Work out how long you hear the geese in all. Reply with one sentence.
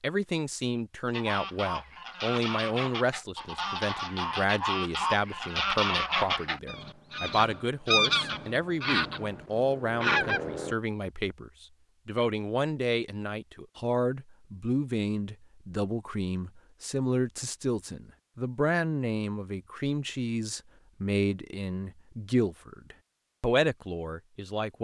You can hear the geese for 10 seconds altogether.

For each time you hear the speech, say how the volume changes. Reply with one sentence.
You can hear the speech from 0.0 to 24.7 s, at a steady volume.